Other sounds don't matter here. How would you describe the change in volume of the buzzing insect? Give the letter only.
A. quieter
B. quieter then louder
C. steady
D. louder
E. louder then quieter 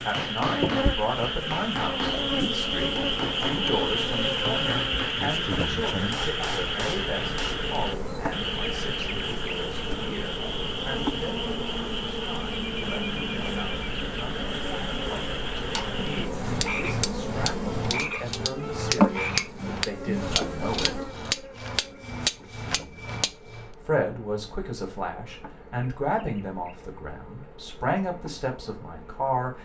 A.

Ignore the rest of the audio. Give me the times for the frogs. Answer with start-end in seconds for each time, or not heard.
0.0-20.2.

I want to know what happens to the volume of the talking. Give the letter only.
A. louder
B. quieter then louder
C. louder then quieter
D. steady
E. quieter
B.